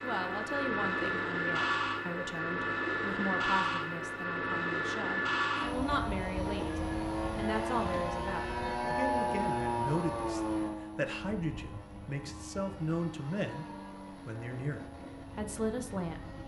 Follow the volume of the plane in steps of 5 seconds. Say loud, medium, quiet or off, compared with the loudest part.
loud, loud, medium, quiet.